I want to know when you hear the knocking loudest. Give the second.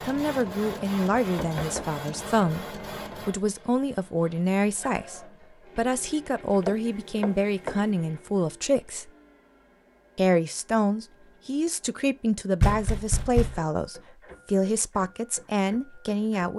13 s.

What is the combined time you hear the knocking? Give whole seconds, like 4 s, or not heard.
3 s.